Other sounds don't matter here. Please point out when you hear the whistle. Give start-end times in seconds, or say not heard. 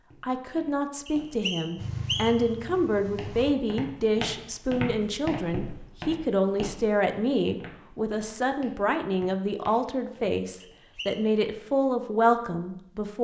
1.1-2.5, 10.6-11.2.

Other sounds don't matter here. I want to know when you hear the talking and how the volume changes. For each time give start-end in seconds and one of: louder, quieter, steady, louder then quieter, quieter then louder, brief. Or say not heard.
0.2-13.2 steady.